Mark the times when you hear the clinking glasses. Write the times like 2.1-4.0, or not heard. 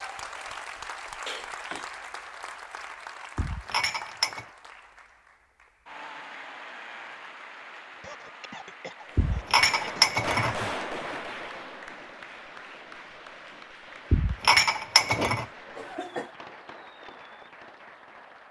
3.4-4.5, 9.2-10.7, 14.1-15.4.